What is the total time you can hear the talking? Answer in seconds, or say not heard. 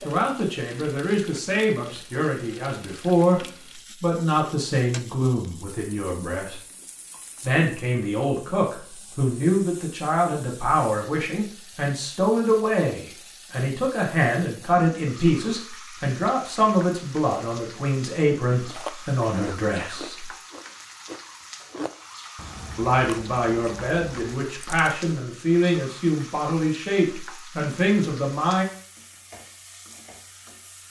25 s.